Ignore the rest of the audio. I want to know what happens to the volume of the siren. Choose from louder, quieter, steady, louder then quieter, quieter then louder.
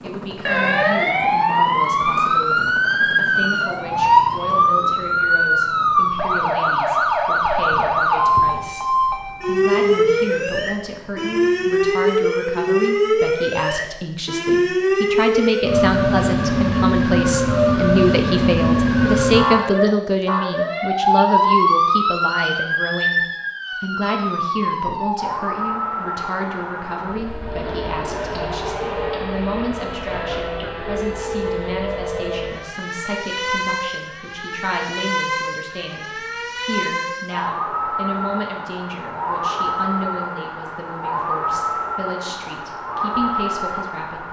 quieter.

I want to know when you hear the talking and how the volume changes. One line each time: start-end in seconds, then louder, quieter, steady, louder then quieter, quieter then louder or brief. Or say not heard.
0.0-44.2 louder then quieter.